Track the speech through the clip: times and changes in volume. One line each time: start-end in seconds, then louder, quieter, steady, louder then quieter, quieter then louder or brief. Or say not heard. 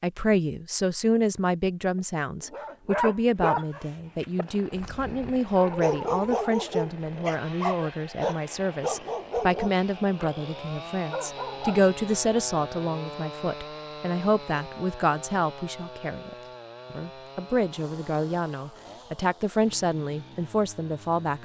0.0-21.4 steady.